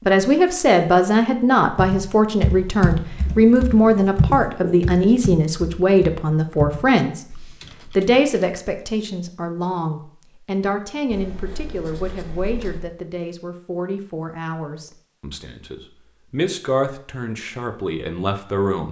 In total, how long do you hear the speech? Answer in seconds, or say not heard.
18 s.